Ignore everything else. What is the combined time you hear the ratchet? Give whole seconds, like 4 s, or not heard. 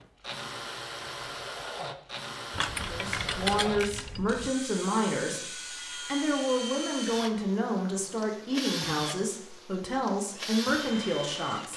2 s.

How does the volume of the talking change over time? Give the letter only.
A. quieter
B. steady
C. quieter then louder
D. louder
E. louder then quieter
B.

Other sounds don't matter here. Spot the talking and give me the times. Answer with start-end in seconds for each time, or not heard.
2.9-11.7.